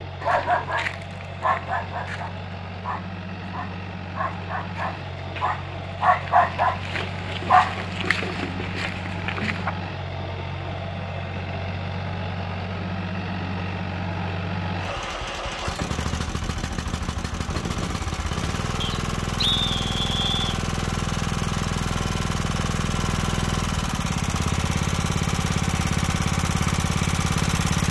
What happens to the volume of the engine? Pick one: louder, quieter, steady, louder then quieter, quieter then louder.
louder.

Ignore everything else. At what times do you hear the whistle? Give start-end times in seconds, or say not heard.
18.8-20.6.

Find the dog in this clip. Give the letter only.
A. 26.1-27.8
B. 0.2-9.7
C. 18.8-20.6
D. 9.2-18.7
B.